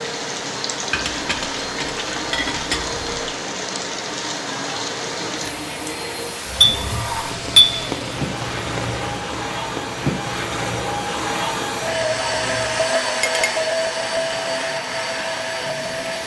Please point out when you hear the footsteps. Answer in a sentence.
You can't hear the footsteps here.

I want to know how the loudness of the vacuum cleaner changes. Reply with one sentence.
The loudness of the vacuum cleaner goes up.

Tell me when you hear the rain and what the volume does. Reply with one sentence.
The rain can be heard from 0.0 to 16.2 s, getting quieter.